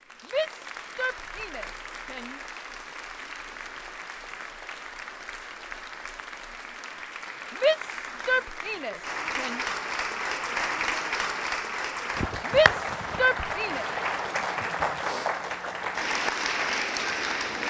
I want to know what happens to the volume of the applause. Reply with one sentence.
The loudness of the applause goes up.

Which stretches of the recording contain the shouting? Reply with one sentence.
The shouting can be heard from 0.2 to 2.4 s, from 7.5 to 9.6 s and from 12.4 to 13.8 s.